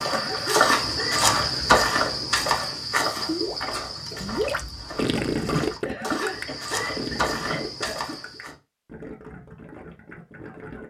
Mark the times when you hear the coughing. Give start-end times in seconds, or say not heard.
0.1-1.2, 5.8-8.0.